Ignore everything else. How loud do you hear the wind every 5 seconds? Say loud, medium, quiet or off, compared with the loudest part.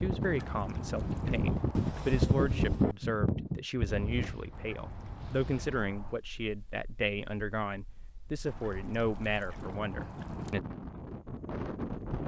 loud, quiet, medium.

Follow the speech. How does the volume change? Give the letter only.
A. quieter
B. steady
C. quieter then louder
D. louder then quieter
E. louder
B.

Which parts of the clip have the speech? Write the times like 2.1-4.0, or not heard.
0.0-10.6.